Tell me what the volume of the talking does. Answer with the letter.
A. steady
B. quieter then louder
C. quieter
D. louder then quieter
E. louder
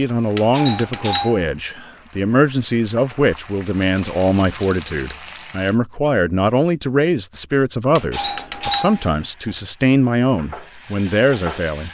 A.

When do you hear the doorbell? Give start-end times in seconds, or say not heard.
0.3-1.5, 8.0-9.1.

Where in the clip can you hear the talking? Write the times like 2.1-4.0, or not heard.
0.0-11.8.